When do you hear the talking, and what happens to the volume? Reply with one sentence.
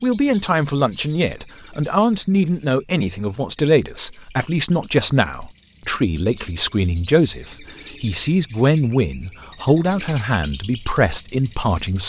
The talking can be heard from 0.0 to 12.0 s, at a steady volume.